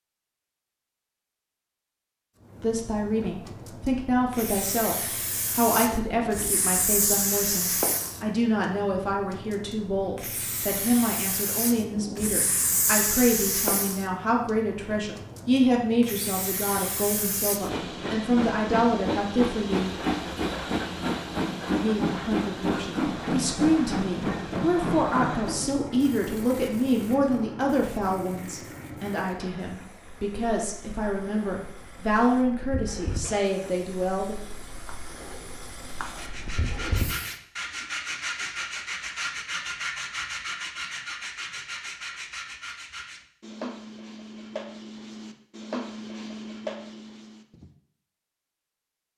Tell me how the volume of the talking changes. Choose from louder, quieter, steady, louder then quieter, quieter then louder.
steady.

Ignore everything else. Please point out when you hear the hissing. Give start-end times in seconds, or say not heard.
2.5-37.4.